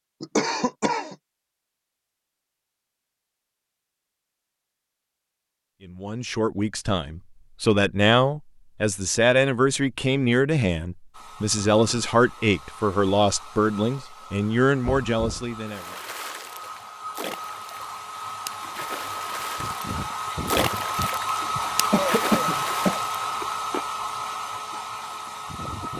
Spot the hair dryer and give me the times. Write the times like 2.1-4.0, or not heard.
11.1-25.9.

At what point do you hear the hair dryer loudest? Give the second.
22 s.